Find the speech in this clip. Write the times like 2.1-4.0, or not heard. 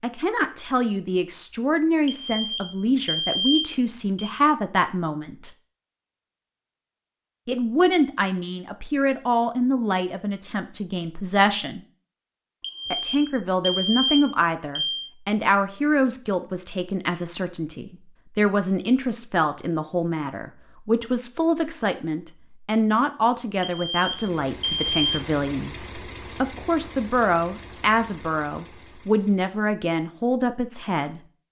0.0-5.5, 7.5-11.8, 12.9-31.2.